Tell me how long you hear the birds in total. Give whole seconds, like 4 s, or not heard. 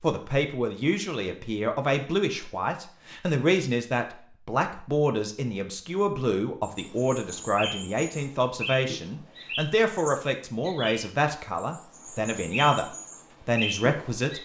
8 s.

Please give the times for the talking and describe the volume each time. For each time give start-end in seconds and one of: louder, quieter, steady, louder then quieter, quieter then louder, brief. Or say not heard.
0.0-12.8 steady
13.4-14.4 brief.